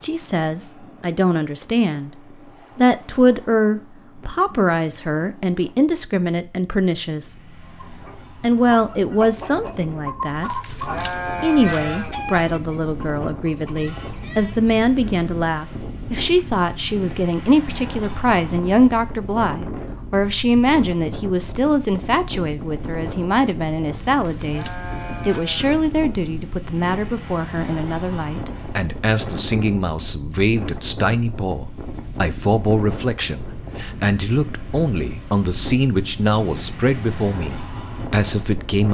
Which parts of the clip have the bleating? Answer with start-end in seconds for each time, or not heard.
10.4-12.2, 24.1-25.9.